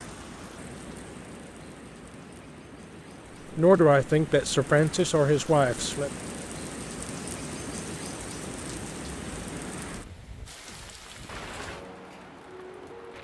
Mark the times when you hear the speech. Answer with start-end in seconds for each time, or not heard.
3.5-6.1.